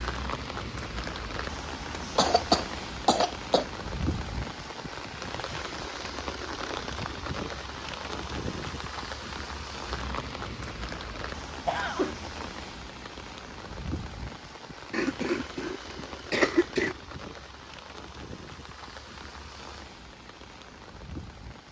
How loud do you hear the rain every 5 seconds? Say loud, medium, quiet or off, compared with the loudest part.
loud, loud, loud, medium, medium.